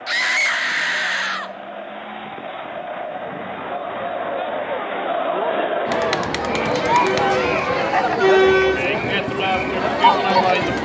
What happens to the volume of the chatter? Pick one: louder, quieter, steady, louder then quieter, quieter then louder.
louder.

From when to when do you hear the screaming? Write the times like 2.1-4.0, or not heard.
0.1-1.5, 7.2-7.7.